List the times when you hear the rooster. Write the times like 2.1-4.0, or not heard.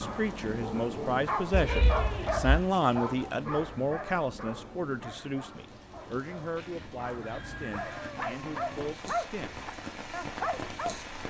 6.5-8.1.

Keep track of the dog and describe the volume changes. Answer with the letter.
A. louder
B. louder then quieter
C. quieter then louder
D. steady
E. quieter
C.